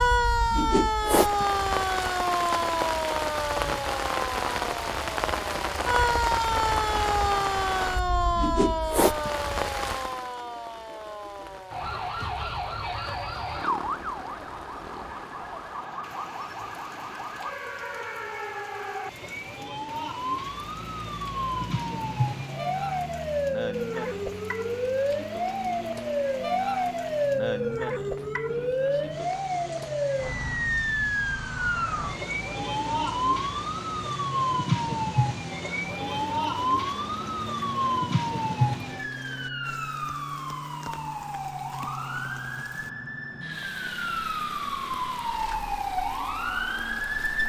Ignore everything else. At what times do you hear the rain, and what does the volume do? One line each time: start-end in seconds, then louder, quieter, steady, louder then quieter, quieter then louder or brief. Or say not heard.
0.0-47.4 quieter.